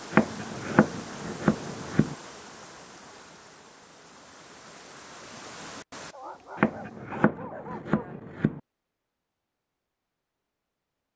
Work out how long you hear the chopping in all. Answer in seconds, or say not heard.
4 s.